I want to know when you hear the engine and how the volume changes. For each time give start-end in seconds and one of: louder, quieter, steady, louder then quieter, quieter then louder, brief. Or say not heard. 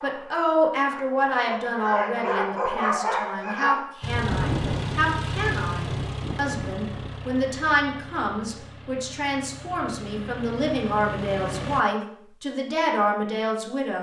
4.0-11.8 quieter then louder.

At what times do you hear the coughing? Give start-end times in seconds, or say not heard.
not heard.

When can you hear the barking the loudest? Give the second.
3 s.